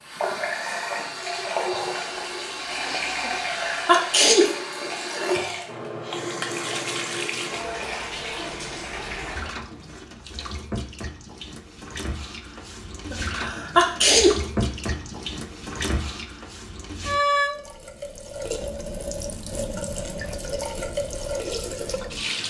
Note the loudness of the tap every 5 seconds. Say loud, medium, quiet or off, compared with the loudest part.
loud, loud, medium, loud, loud.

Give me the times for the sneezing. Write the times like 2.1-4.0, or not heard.
3.2-4.5, 13.1-14.3.